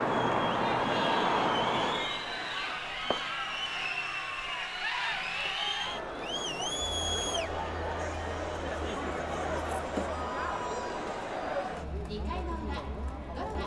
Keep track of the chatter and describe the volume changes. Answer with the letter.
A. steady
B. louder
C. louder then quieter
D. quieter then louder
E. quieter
A.